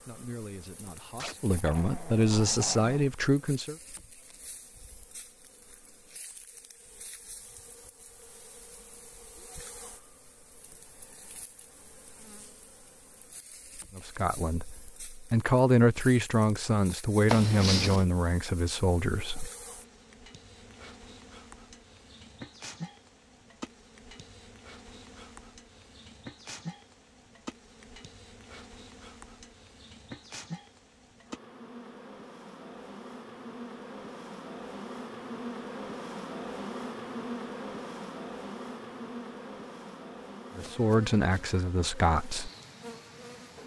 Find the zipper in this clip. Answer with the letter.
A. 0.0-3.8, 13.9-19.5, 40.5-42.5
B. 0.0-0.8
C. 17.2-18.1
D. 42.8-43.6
C.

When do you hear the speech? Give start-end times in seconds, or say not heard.
0.0-3.8, 13.9-19.5, 40.5-42.5.